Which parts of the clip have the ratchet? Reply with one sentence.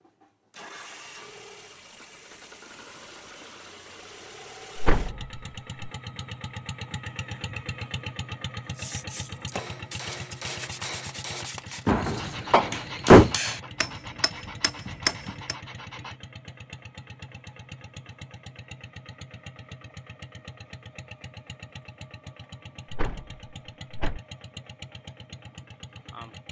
The ratchet can't be heard in this clip.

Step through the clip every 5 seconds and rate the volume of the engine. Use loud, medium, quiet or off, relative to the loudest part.
medium, loud, medium, medium, medium, medium.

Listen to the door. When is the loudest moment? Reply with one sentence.
The loudest moment of the door is at 13 seconds.